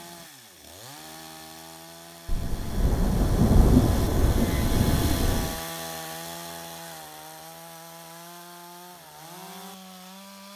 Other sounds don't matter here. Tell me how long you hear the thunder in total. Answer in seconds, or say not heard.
3 s.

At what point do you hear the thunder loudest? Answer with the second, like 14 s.
4 s.